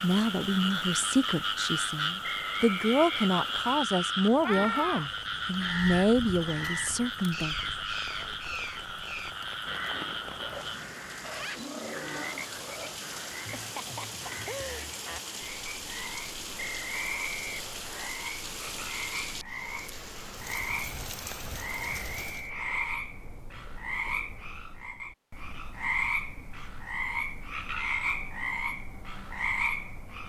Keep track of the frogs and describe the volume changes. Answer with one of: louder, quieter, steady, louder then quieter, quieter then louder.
quieter then louder.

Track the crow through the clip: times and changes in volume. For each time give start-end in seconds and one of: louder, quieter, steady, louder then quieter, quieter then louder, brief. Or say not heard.
4.4-14.6 quieter.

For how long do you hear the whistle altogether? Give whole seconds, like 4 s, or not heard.
4 s.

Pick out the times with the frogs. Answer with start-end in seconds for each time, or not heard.
0.0-30.2.